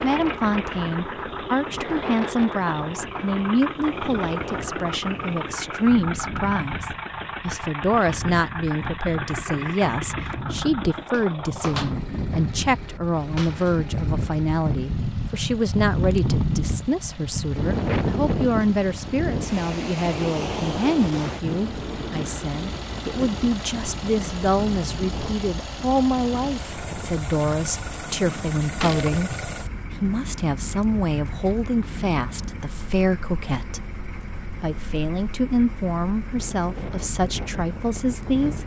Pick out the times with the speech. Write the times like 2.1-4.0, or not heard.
0.0-29.4, 30.0-38.6.